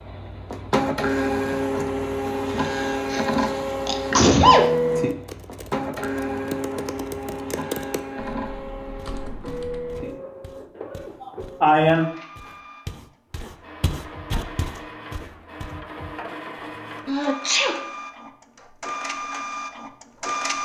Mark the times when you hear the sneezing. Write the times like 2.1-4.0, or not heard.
3.1-4.7, 10.9-12.1, 17.1-17.8.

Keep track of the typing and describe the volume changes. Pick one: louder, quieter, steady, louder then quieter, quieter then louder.
louder then quieter.